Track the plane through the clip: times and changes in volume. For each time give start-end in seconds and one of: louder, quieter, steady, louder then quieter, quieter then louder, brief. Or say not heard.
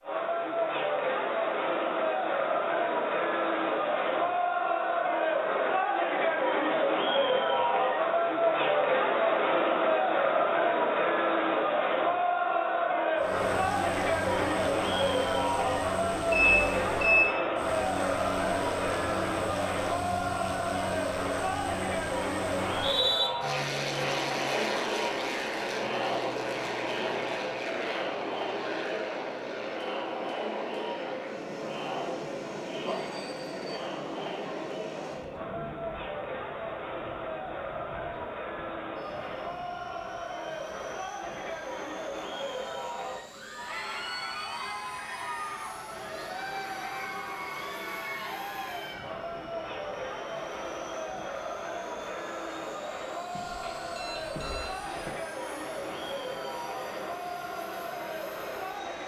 13.2-59.0 quieter.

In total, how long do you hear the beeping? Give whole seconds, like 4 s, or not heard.
4 s.